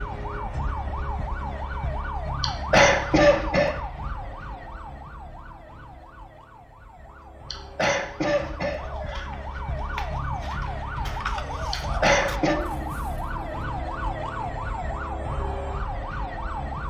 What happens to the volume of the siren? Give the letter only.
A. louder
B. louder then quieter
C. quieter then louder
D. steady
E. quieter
C.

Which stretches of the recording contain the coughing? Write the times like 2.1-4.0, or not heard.
2.4-3.8, 7.5-9.2, 11.7-12.6.